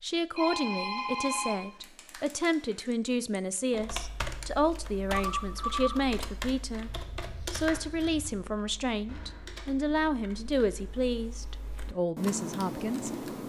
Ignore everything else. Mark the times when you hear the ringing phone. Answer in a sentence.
You can hear the ringing phone from 0.3 to 2.9 s, from 5.2 to 6.0 s and from 9.1 to 9.6 s.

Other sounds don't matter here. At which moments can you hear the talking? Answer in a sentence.
The talking can be heard from 0.0 to 13.2 s.